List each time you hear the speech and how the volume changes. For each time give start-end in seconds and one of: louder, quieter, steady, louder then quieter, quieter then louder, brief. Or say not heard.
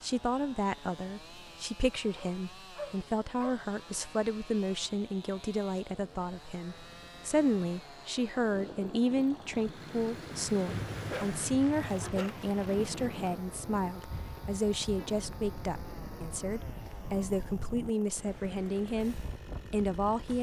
0.0-20.3 steady.